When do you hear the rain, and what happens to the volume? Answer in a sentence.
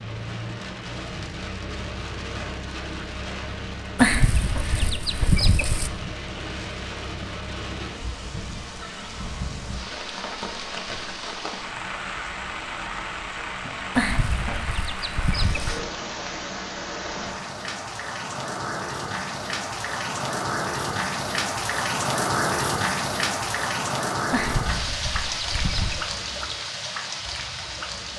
The rain can be heard from 0.0 to 28.1 s, getting louder.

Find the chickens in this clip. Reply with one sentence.
You can hear the chickens from 4.0 to 5.9 s, from 13.9 to 15.8 s and from 24.3 to 26.1 s.